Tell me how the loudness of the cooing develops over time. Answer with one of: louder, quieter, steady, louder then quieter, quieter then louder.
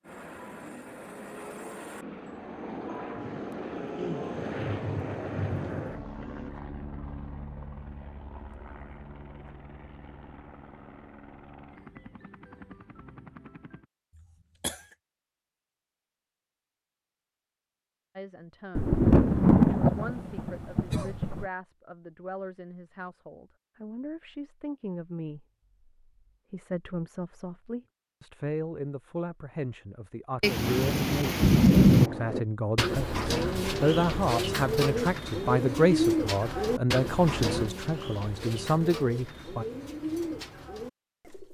quieter.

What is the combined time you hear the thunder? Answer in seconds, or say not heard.
8 s.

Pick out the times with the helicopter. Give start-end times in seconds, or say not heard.
0.0-13.8.